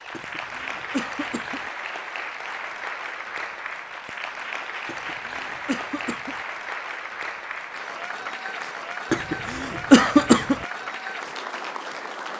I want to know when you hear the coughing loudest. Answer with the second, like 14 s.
10 s.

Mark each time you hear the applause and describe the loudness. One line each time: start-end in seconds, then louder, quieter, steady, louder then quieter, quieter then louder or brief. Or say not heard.
0.0-12.3 steady.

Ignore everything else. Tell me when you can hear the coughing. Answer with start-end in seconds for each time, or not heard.
0.1-1.6, 4.8-6.3, 9.1-10.7.